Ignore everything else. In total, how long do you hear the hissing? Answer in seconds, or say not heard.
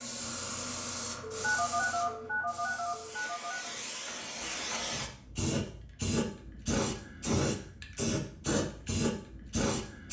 10 s.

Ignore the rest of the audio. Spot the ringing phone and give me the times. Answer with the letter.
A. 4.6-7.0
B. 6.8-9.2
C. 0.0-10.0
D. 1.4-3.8
D.